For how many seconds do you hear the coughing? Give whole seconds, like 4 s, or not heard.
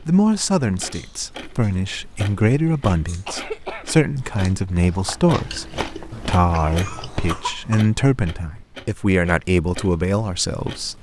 3 s.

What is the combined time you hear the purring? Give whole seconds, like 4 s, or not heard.
not heard.